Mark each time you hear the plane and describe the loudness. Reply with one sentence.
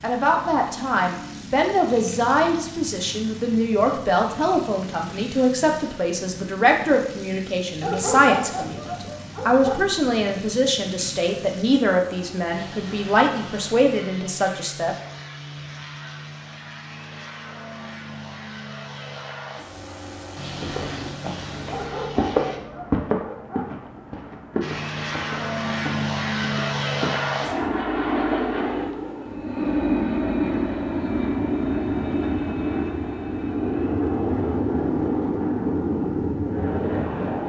You can hear the plane from 0.0 to 22.6 s, at a steady volume; and from 24.6 to 37.4 s, at a steady volume.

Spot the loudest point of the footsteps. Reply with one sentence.
The volume of the footsteps peaks at 22 seconds.